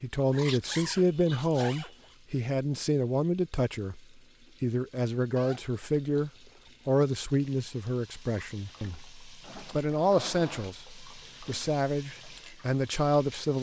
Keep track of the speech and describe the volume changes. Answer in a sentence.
The volume of the speech stays about the same.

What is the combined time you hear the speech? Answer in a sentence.
The speech can be heard for 13 seconds in total.